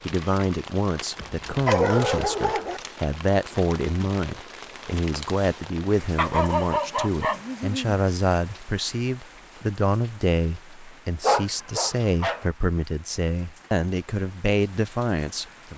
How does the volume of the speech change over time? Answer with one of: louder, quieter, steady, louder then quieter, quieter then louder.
steady.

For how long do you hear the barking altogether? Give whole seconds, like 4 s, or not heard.
5 s.